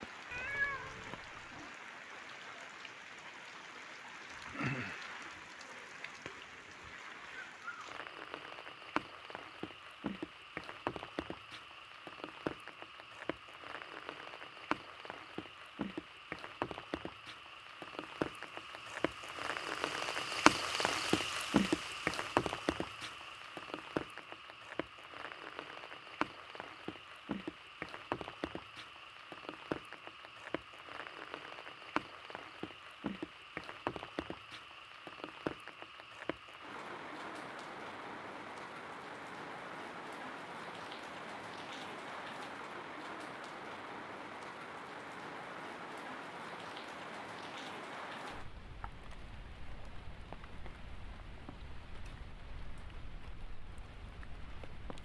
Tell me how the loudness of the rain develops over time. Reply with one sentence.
The loudness of the rain goes up, then down.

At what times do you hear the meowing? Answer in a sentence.
You can hear the meowing from 0.3 to 1.7 s.